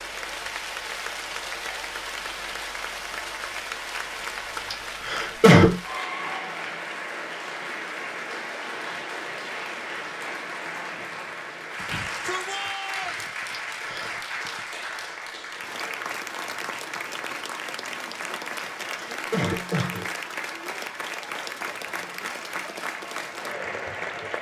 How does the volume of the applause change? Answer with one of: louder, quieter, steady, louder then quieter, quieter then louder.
steady.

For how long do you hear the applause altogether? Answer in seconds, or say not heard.
24 s.